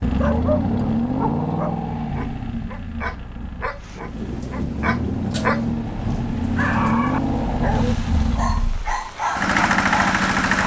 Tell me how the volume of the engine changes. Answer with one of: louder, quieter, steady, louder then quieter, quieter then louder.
quieter then louder.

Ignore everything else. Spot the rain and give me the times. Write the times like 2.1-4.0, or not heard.
3.8-10.6.